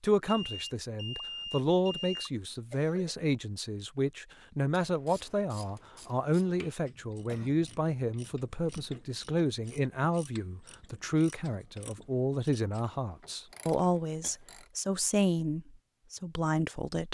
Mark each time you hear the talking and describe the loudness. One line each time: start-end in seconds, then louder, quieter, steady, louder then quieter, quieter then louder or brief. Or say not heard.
0.0-17.0 steady.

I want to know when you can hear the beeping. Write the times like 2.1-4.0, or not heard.
0.2-2.3.